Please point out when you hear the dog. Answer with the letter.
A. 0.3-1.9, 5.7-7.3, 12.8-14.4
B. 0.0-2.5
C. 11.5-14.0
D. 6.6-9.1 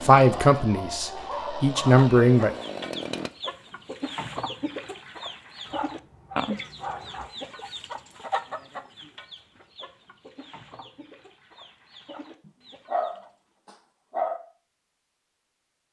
A.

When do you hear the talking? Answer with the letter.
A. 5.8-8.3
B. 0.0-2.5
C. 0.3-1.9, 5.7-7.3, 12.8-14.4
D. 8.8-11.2
B.